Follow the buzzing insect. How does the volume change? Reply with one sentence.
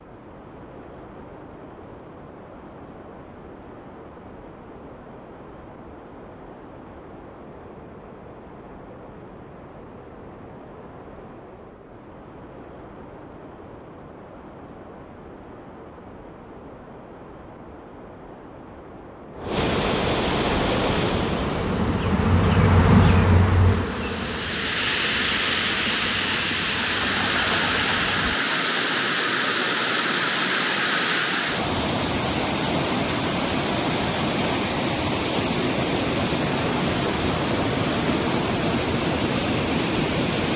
The volume of the buzzing insect goes down.